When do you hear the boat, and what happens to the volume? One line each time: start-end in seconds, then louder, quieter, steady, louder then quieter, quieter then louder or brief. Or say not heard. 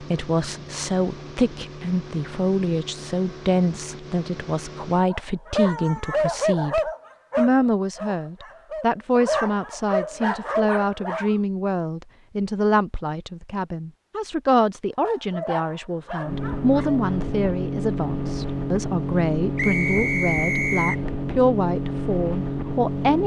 0.0-5.0 steady
16.2-23.2 steady.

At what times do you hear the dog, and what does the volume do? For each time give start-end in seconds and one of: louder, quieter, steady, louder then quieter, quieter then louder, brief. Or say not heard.
5.1-11.3 quieter then louder
15.0-17.1 brief.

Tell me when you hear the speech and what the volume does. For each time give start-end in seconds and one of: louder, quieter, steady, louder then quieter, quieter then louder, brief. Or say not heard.
0.0-23.2 steady.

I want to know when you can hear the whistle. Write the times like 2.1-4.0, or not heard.
19.6-21.1.